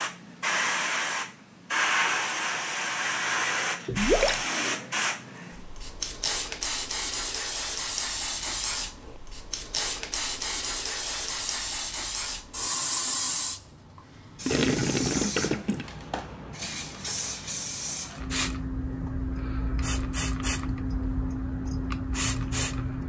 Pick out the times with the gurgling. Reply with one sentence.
You can hear the gurgling from 3.9 to 4.4 s and from 14.4 to 15.8 s.